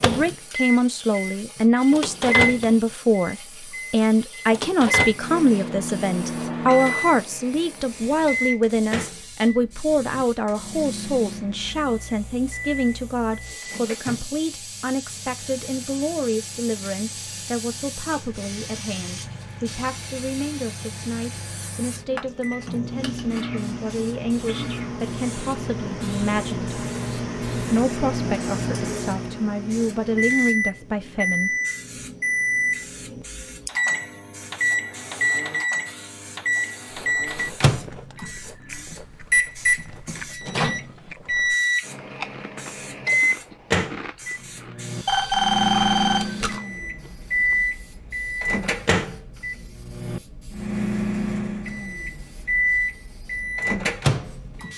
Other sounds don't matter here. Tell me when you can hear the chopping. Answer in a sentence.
The chopping can't be heard in this clip.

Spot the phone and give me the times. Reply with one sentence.
You can hear the phone from 45.0 to 46.6 s.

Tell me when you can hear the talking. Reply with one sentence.
You can hear the talking from 0.0 to 26.7 s and from 27.7 to 31.5 s.